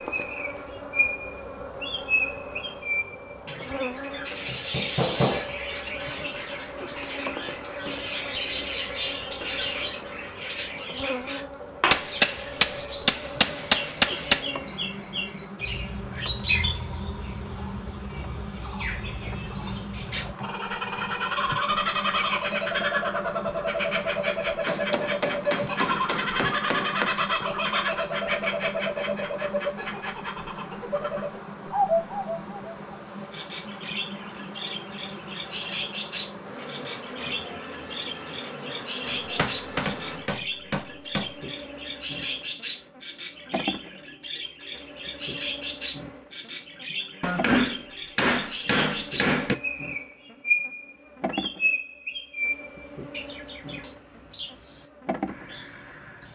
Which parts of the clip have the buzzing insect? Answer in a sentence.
The buzzing insect can be heard from 0.0 to 56.3 s.